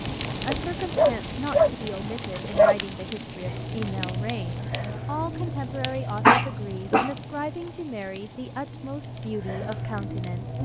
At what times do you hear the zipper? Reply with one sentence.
You can't hear the zipper here.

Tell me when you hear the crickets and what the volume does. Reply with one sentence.
The crickets can be heard from 3.4 to 10.6 s, getting quieter then louder.